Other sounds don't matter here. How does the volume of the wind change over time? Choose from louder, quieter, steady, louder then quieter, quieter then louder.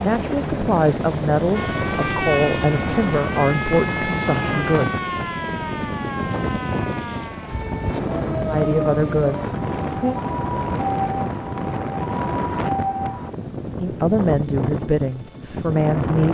steady.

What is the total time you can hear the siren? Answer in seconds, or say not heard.
12 s.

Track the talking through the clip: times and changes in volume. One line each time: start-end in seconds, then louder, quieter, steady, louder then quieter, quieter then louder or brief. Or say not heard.
0.0-5.0 steady
8.4-10.2 brief
13.8-16.2 brief.